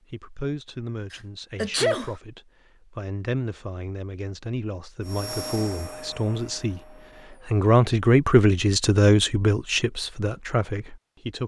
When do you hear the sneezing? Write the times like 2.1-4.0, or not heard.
1.1-2.1.